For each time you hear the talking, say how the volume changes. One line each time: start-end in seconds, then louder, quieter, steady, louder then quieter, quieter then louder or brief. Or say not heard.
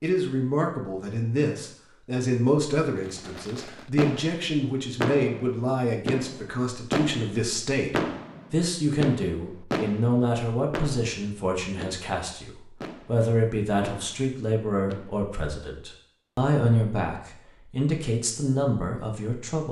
0.0-19.6 steady.